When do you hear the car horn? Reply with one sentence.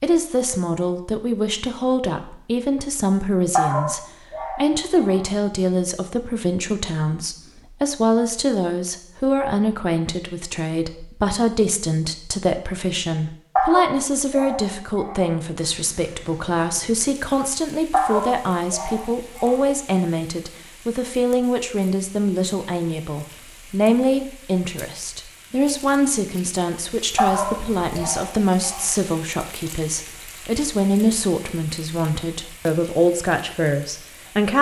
You can't hear the car horn here.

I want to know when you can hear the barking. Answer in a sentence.
The barking can be heard from 3.5 to 5.2 s, from 13.6 to 15.3 s, from 17.9 to 19.6 s and from 27.1 to 28.9 s.